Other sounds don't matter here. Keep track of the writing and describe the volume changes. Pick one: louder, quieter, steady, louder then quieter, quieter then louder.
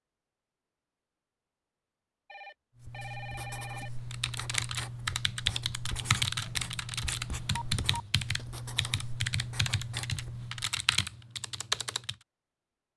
steady.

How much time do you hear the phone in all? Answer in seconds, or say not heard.
3 s.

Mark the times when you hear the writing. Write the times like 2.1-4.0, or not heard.
2.8-10.7.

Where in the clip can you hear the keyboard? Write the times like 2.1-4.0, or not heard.
4.1-12.2.